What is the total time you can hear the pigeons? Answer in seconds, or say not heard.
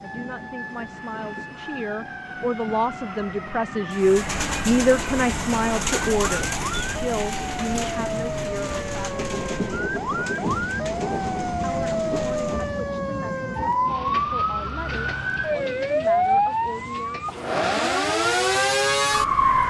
9 s.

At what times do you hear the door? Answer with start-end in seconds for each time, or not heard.
not heard.